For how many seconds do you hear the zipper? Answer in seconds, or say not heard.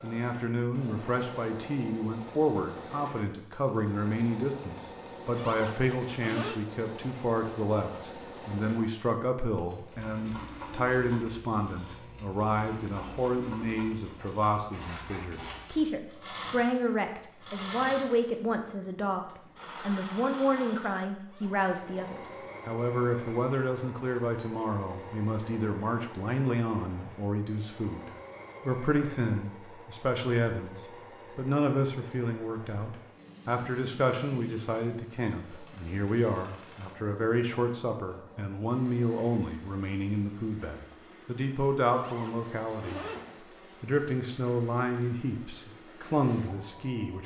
3 s.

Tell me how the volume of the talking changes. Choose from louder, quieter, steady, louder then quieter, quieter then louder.
steady.